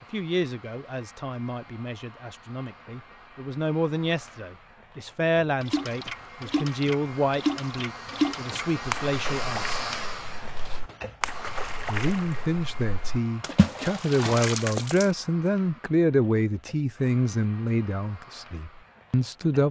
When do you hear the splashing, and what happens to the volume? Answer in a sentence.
The splashing can be heard from 5.6 to 15.1 s, getting quieter then louder.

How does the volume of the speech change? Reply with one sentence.
The volume of the speech goes up.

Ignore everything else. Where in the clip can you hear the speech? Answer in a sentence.
You can hear the speech from 0.0 to 9.8 s and from 11.8 to 19.6 s.